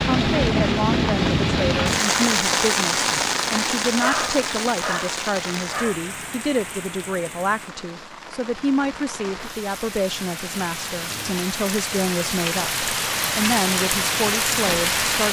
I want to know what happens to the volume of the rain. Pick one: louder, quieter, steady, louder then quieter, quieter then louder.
quieter then louder.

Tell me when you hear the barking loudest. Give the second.
4 s.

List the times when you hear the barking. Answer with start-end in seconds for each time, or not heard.
4.0-6.0.